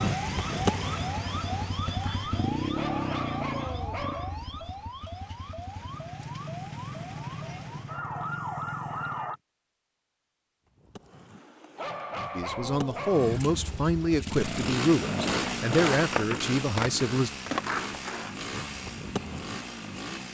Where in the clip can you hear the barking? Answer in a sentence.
You can hear the barking from 2.8 to 4.3 s and from 11.8 to 13.4 s.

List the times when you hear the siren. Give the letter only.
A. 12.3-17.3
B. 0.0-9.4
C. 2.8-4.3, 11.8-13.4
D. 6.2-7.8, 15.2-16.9
B.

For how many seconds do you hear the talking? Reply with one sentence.
The talking can be heard for 5 seconds in total.